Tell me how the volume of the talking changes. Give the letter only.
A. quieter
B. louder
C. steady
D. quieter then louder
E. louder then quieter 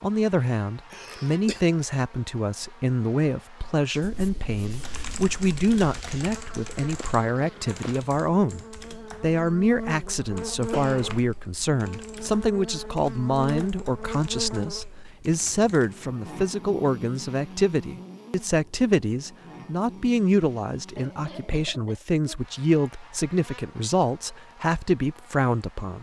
C.